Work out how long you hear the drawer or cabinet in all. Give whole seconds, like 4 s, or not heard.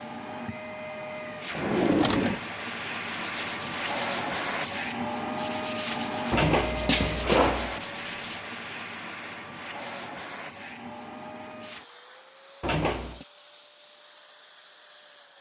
3 s.